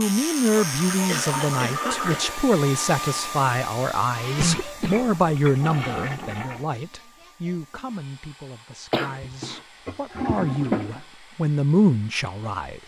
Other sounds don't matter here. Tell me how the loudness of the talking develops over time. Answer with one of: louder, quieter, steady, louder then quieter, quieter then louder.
quieter then louder.